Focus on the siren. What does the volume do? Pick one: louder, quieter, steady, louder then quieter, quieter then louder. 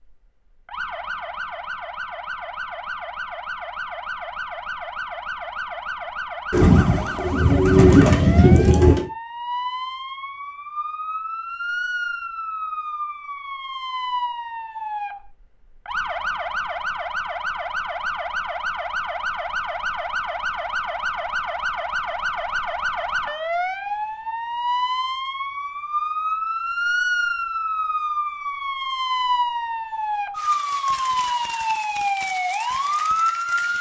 louder.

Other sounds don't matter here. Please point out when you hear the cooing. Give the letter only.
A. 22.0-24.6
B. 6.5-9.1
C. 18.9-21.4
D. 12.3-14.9
B.